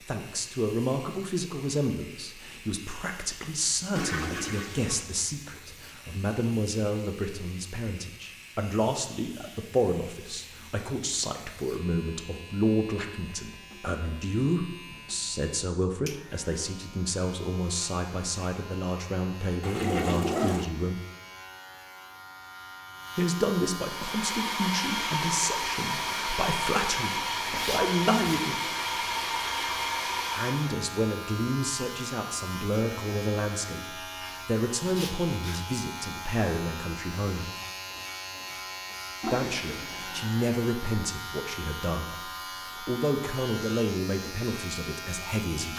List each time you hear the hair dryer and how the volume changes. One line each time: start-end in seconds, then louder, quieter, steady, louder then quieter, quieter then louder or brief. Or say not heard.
23.8-30.8 steady.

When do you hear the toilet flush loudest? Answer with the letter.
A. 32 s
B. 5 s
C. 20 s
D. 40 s
C.